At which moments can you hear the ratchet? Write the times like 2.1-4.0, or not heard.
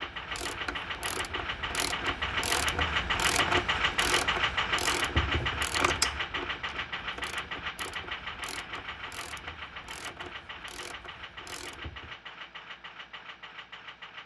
0.0-12.2.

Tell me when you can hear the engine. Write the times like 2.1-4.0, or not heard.
0.0-14.2.